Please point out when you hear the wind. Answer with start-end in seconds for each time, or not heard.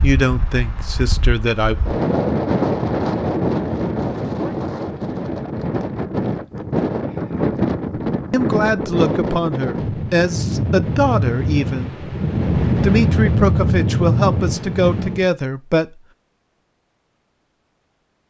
0.0-15.2.